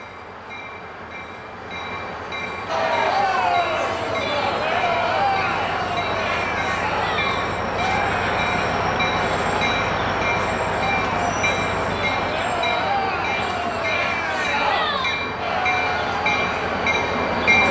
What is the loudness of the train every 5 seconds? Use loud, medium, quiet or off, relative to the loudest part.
medium, loud, loud, loud.